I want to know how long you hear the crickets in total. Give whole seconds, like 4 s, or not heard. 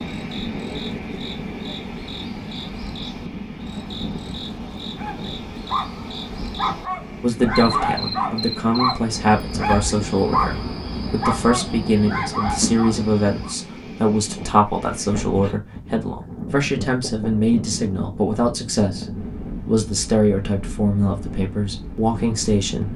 14 s.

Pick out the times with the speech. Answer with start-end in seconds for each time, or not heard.
7.2-22.9.